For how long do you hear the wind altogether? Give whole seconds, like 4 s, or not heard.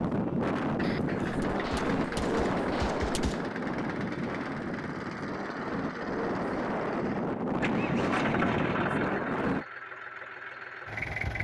10 s.